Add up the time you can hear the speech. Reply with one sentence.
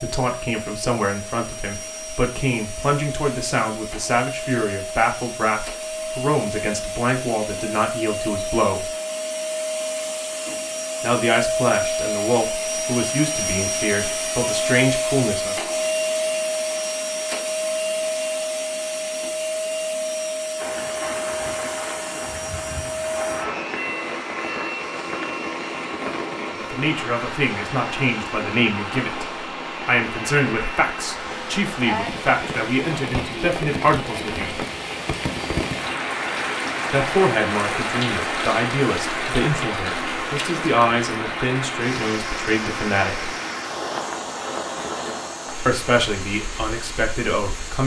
You can hear the speech for 30 seconds altogether.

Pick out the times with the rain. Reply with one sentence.
You can hear the rain from 20.6 to 47.8 s.